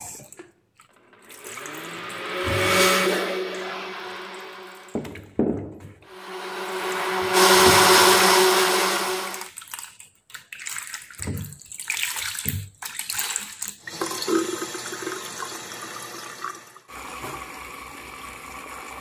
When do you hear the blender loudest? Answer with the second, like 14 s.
8 s.